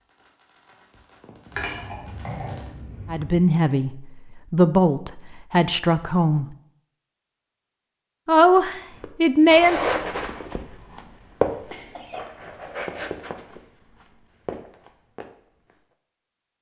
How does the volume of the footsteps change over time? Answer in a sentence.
The loudness of the footsteps goes down.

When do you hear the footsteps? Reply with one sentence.
The footsteps can be heard from 9.0 to 15.8 s.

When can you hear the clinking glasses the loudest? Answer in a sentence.
The volume of the clinking glasses peaks at 2 seconds.